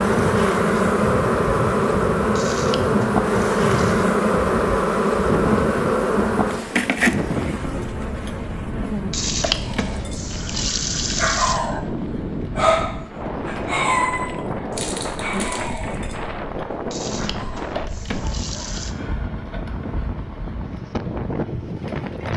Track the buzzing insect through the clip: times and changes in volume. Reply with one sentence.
You can hear the buzzing insect from 0.0 to 22.3 s, getting quieter.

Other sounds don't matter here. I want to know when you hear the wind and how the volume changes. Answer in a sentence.
You can hear the wind from 0.0 to 22.3 s, at a steady volume.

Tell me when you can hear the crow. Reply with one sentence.
The crow can't be heard in this clip.